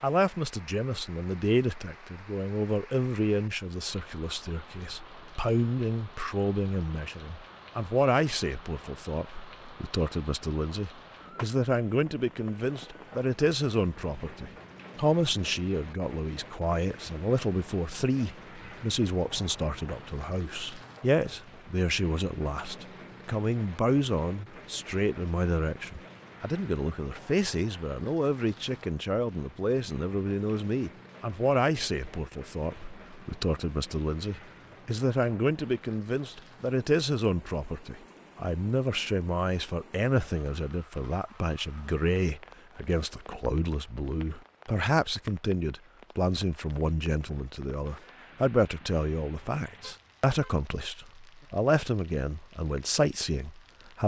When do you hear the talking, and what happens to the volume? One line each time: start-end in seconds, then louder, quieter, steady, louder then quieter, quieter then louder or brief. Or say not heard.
0.0-54.0 steady.